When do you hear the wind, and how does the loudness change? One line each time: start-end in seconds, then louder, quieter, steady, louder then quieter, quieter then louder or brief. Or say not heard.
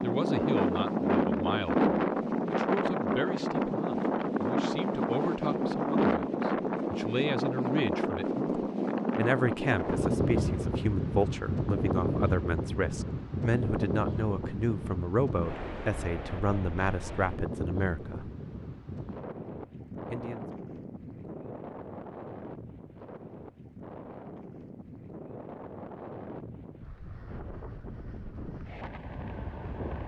0.0-30.0 quieter.